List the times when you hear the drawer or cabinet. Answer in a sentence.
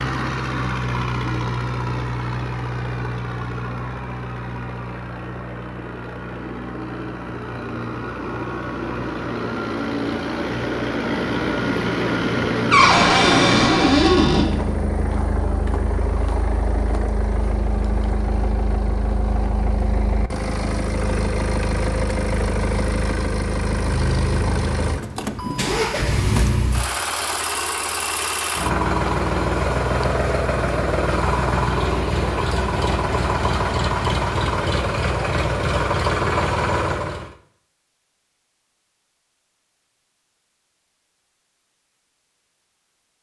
The drawer or cabinet can be heard from 12.7 to 14.4 s.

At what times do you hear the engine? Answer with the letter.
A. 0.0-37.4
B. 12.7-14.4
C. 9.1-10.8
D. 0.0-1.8
A.